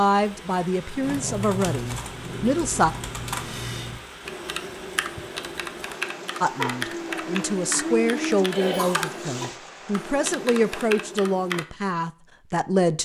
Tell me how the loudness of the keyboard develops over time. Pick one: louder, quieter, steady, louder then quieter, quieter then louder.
steady.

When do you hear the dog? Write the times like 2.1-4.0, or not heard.
6.5-8.5.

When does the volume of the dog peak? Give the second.
8 s.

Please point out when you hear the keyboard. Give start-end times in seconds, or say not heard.
1.0-11.7.